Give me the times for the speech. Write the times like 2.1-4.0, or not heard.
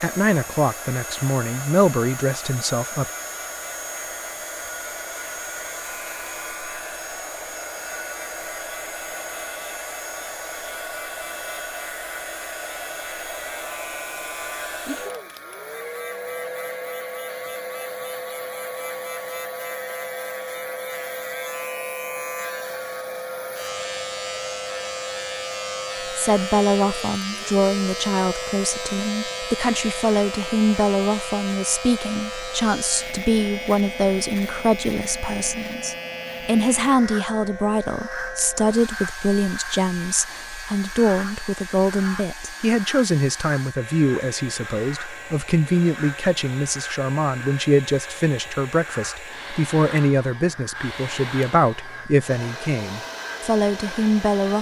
0.0-3.0, 26.1-54.5.